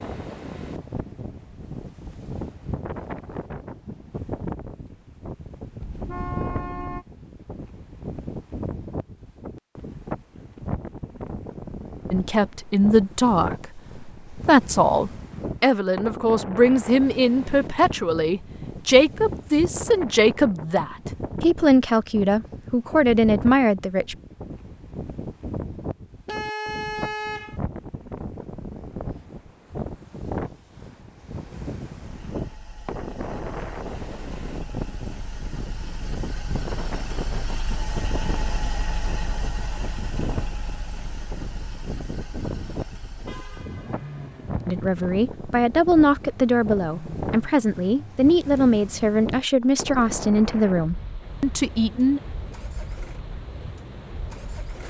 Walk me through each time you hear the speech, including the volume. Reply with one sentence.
You can hear the speech from 12.1 to 24.1 s, at a steady volume; and from 44.6 to 52.2 s, at a steady volume.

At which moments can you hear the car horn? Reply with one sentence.
You can hear the car horn from 5.8 to 7.0 s, from 26.2 to 27.6 s and from 43.2 to 44.2 s.